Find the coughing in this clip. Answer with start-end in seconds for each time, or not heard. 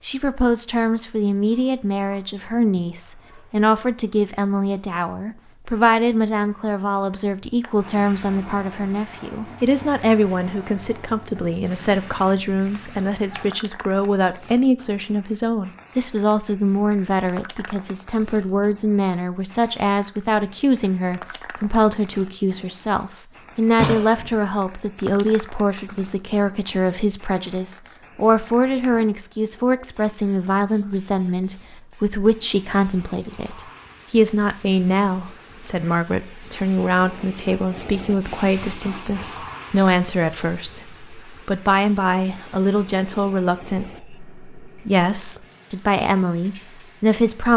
23.8-24.4.